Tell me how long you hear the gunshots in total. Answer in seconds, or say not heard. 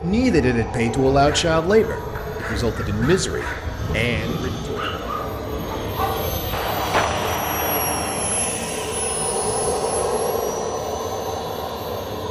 2 s.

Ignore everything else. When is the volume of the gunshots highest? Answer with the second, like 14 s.
7 s.